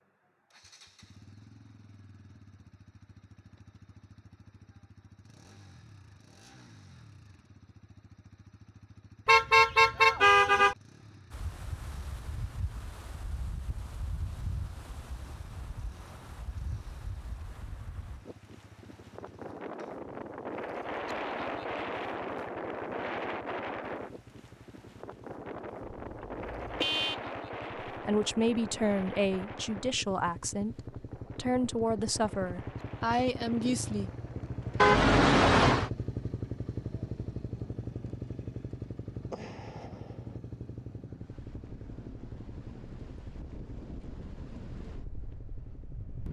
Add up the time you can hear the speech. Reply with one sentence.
You can hear the speech for 6 seconds altogether.